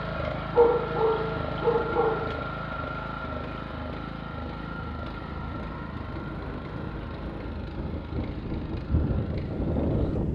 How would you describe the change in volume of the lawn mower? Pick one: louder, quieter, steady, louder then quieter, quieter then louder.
quieter.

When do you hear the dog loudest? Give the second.
1 s.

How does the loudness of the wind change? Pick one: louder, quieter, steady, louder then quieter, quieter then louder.
louder.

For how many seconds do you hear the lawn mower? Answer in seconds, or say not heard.
10 s.